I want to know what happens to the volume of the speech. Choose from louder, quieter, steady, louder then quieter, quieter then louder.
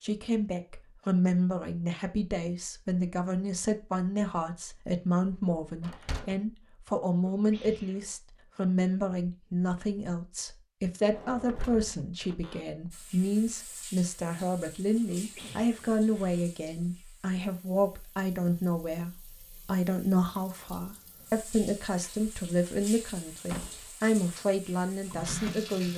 steady.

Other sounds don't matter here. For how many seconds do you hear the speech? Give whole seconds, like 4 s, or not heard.
26 s.